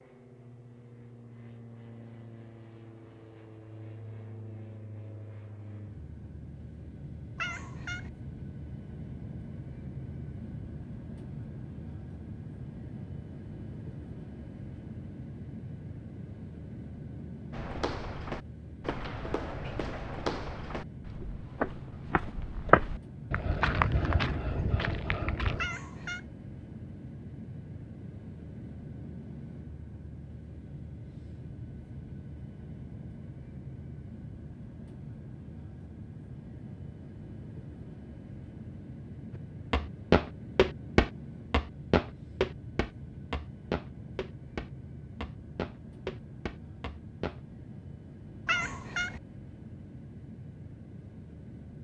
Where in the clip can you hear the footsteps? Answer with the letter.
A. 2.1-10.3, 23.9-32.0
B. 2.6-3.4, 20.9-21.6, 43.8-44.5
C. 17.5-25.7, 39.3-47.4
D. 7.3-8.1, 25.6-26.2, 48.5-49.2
C.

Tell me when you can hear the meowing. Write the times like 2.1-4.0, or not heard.
7.3-8.1, 25.6-26.2, 48.5-49.2.